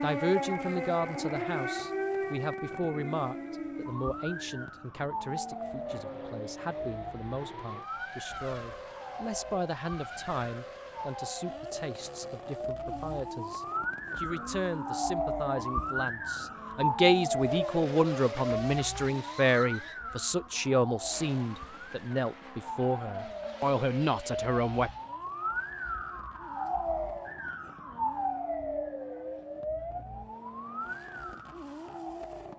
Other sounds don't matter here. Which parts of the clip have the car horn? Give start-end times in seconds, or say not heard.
not heard.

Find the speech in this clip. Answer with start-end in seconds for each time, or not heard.
0.0-24.9.